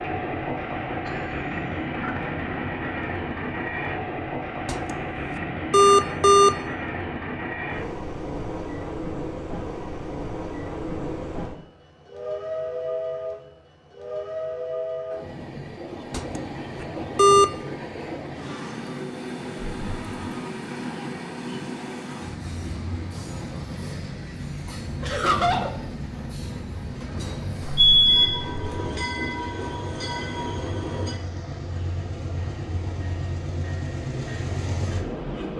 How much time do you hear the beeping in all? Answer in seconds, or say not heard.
4 s.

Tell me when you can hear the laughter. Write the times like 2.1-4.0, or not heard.
1.1-2.3, 19.6-20.2, 25.0-25.8.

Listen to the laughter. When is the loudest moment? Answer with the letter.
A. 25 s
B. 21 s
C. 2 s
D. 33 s
A.